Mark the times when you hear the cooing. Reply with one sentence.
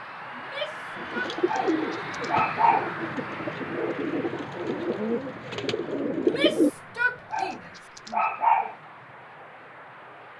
The cooing can be heard from 0.9 to 6.7 s.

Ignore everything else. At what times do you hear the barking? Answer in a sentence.
You can hear the barking from 1.4 to 2.9 s and from 7.3 to 8.8 s.